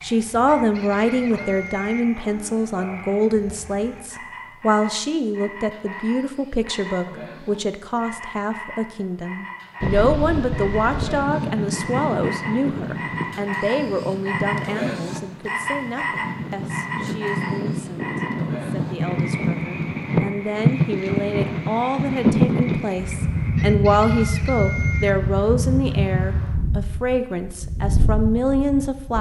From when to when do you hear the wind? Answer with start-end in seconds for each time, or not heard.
9.8-29.1.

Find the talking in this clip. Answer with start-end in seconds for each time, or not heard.
0.0-29.1.